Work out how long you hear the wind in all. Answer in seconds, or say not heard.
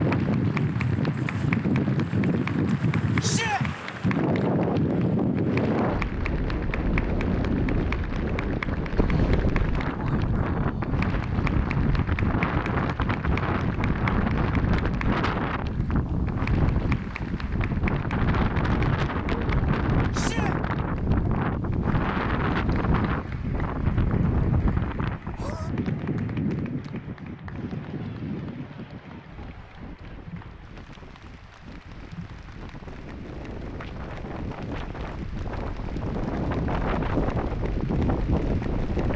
39 s.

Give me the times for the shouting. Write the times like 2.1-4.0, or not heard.
3.2-3.6, 20.1-20.6.